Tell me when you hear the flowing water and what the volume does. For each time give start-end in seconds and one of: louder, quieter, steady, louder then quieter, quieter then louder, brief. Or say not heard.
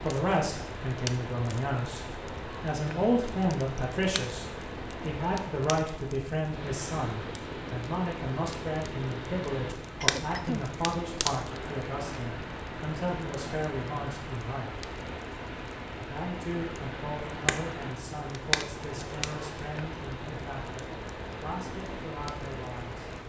0.0-23.2 steady.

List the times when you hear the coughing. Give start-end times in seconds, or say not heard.
10.0-10.7.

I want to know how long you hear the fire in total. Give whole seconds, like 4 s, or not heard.
23 s.